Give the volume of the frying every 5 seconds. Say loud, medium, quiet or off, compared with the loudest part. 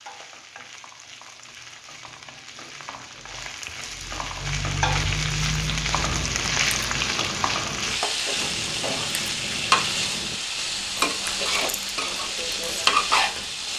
medium, loud, loud.